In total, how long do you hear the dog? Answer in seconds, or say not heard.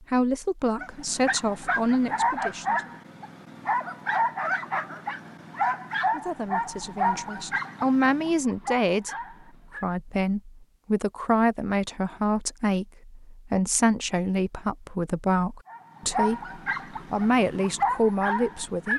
12 s.